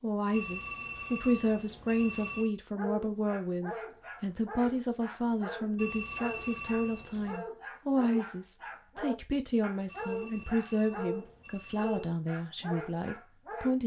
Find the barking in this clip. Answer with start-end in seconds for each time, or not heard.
2.8-13.8.